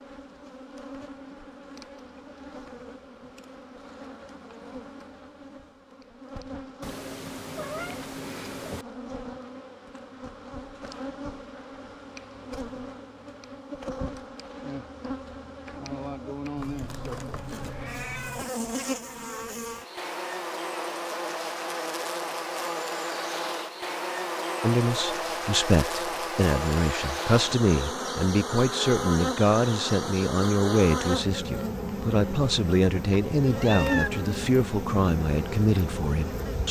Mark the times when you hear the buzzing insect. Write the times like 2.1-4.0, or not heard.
0.0-36.6.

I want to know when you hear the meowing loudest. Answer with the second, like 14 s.
34 s.